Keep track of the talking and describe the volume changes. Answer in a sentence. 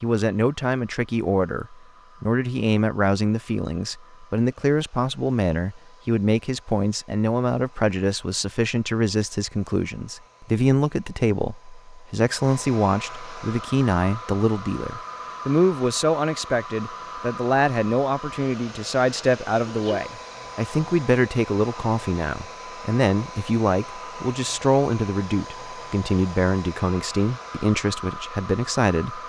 The volume of the talking stays about the same.